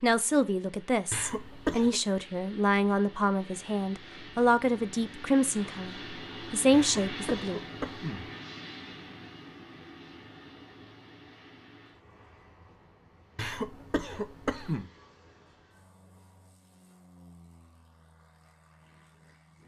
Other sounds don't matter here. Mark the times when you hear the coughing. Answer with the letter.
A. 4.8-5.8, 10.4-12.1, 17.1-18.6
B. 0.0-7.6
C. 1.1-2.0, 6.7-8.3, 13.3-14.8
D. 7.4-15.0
C.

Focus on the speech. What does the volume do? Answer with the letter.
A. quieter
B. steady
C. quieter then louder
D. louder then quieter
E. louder
E.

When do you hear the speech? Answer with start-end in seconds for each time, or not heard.
0.0-7.6.